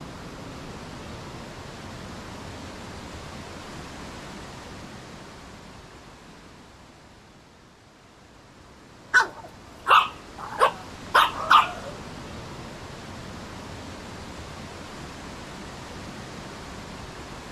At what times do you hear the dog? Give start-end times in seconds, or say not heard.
9.1-11.9.